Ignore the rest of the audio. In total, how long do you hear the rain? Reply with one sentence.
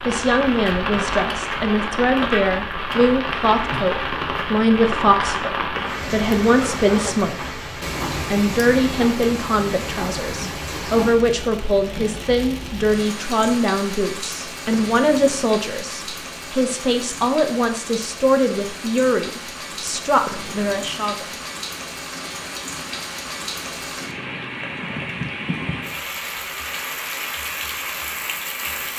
The rain can be heard for 29 seconds in total.